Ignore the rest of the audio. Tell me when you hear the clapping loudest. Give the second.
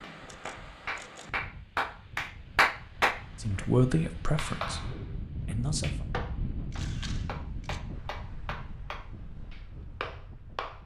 3 s.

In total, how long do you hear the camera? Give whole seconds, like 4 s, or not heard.
2 s.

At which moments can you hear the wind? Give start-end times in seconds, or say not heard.
0.0-10.8.